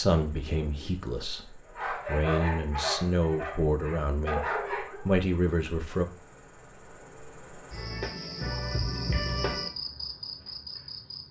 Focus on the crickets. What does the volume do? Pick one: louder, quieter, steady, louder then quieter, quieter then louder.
louder.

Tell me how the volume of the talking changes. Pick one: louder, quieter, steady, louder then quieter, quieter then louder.
louder.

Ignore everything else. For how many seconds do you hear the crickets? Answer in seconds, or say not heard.
11 s.